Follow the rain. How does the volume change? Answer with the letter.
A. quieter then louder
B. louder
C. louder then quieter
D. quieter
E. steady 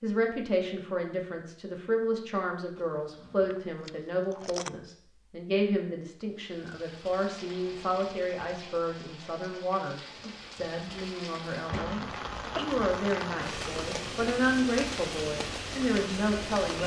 B.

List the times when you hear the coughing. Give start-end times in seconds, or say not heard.
11.7-12.7.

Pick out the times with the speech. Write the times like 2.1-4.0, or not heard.
0.0-12.0, 12.6-16.8.